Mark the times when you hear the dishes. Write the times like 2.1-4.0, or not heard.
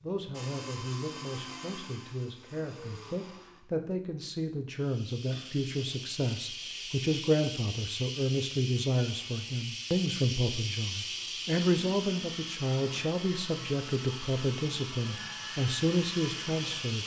not heard.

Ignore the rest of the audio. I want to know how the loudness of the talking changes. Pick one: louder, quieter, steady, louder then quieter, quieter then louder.
louder.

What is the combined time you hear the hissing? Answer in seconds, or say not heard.
12 s.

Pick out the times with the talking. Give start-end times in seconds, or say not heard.
0.0-17.0.